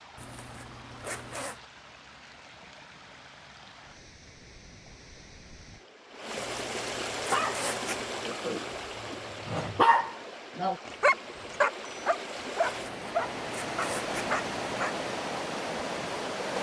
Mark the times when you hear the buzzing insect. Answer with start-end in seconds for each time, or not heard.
not heard.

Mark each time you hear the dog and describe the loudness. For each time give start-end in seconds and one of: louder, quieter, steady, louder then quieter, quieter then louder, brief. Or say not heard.
7.3-14.9 louder then quieter.